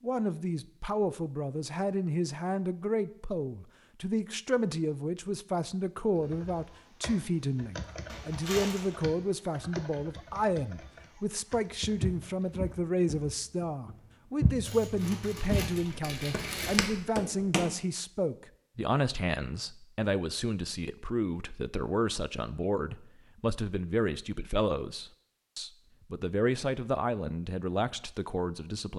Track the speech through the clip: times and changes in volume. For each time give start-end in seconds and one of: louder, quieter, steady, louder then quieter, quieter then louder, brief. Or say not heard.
0.0-28.9 steady.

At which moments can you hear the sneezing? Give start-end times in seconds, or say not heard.
not heard.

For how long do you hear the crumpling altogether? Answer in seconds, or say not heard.
3 s.